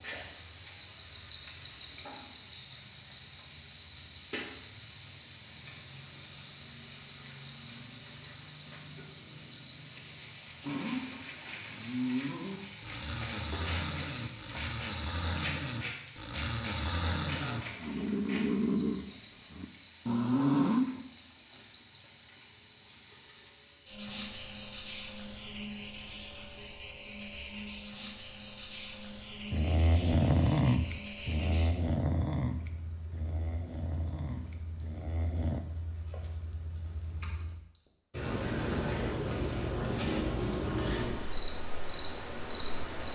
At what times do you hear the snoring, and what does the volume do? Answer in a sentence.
The snoring can be heard from 10.6 to 21.0 s, getting louder; and from 29.5 to 35.6 s, getting quieter.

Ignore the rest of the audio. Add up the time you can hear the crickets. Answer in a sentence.
You can hear the crickets for 43 seconds altogether.